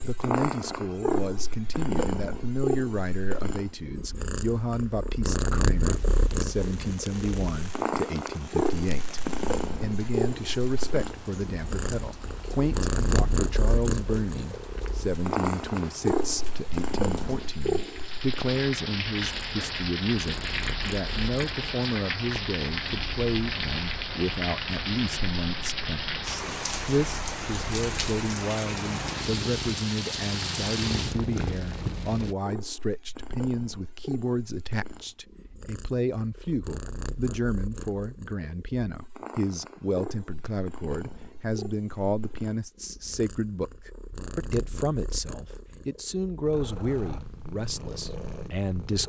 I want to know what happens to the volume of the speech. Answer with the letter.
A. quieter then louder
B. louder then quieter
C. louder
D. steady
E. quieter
D.